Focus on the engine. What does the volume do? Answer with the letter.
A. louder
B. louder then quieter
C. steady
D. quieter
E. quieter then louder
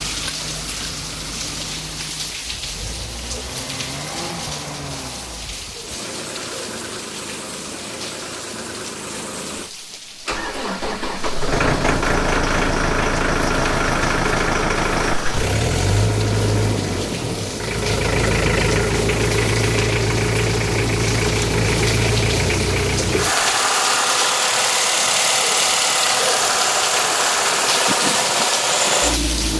A.